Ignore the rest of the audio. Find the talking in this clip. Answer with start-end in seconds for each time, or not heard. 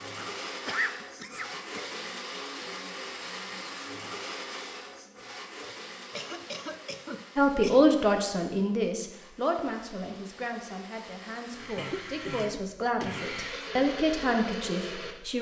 7.3-15.3.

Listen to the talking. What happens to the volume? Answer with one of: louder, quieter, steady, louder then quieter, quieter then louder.
quieter then louder.